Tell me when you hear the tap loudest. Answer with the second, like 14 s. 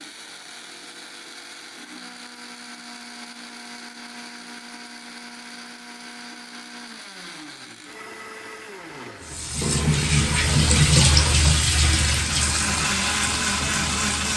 11 s.